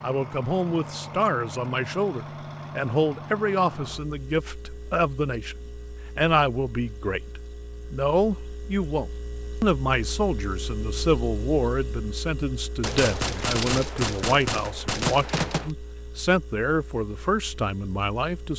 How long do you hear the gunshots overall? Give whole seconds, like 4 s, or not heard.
3 s.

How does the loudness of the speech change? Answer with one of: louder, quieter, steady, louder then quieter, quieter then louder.
steady.